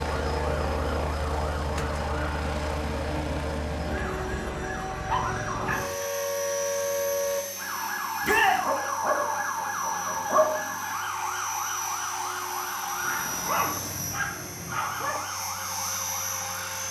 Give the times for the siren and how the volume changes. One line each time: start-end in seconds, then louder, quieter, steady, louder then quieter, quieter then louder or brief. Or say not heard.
0.0-16.8 louder then quieter.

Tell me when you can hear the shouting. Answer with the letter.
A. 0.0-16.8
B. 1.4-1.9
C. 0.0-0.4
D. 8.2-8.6
D.